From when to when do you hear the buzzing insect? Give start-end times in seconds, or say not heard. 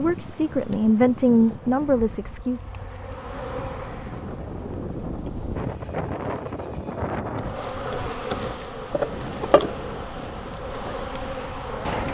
0.0-5.8, 7.3-12.0.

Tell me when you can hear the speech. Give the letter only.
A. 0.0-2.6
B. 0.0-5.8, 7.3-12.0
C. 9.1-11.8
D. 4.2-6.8
A.